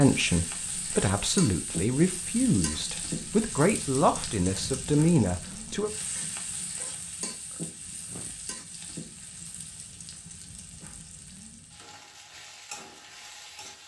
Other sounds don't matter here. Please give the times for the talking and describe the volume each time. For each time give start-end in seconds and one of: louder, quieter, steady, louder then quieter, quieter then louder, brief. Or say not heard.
0.0-5.9 steady.